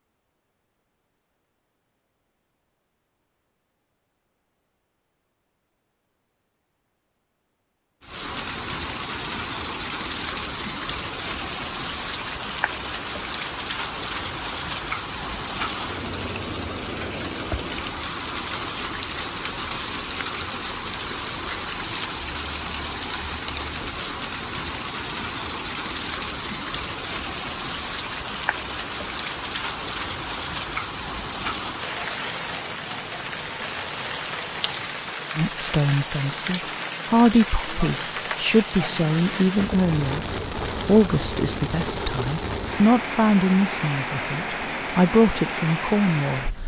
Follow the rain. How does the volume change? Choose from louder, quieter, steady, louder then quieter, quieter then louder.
steady.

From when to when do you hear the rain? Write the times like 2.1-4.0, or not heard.
8.0-46.6.